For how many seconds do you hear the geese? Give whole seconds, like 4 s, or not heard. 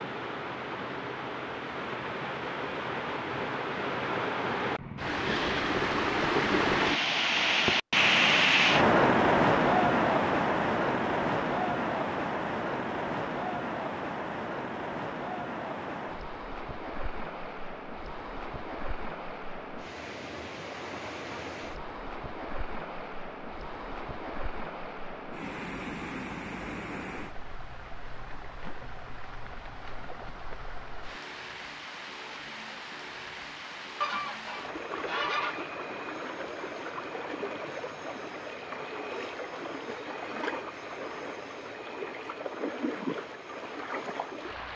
2 s.